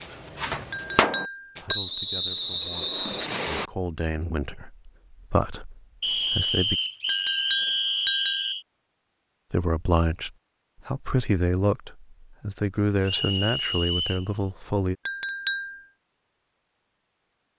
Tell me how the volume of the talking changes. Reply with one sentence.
The loudness of the talking goes up.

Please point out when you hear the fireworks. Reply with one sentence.
You can hear the fireworks from 0.0 to 1.6 s.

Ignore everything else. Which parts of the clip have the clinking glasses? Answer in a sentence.
The clinking glasses can be heard from 0.7 to 1.8 s, from 7.0 to 8.4 s and from 15.1 to 15.8 s.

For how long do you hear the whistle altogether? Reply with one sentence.
You can hear the whistle for 6 seconds altogether.